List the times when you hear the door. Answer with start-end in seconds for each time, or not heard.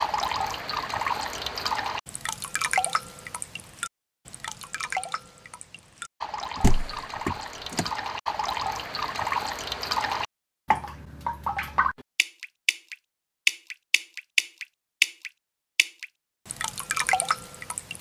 6.5-7.8.